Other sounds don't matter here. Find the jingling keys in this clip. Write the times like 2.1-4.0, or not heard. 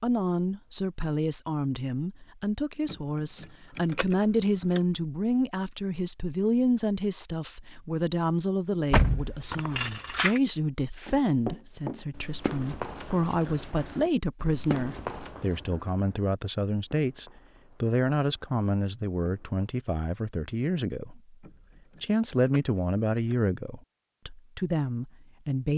2.9-4.8, 8.9-10.4, 21.4-23.4.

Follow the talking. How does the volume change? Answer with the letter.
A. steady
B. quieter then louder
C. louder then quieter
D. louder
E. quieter
A.